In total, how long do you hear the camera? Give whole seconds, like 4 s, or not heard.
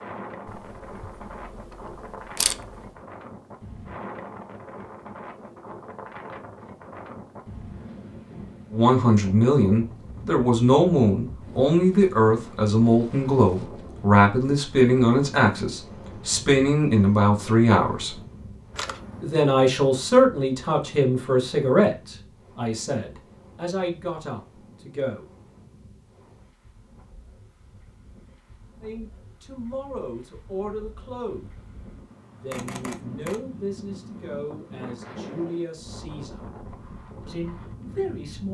4 s.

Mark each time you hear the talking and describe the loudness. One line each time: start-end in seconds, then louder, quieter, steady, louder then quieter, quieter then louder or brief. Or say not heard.
8.7-18.1 steady
19.2-25.2 quieter
28.8-31.5 brief
32.3-36.5 quieter then louder
37.2-38.5 brief.